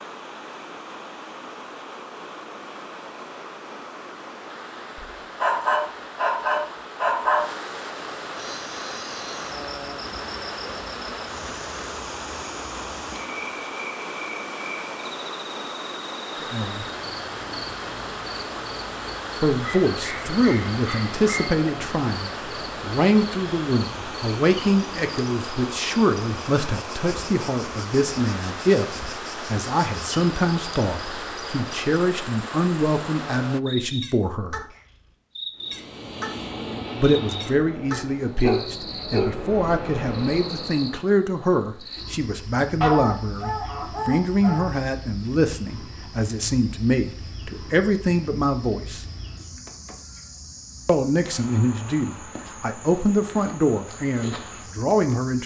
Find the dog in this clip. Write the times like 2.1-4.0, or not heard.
5.3-7.5, 19.6-21.4, 37.9-39.4, 42.8-44.8.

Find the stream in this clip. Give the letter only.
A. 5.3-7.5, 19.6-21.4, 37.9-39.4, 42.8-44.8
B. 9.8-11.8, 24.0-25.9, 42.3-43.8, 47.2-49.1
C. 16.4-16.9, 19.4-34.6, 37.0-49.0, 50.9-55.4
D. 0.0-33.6
D.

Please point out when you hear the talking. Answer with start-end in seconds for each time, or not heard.
16.4-16.9, 19.4-34.6, 37.0-49.0, 50.9-55.4.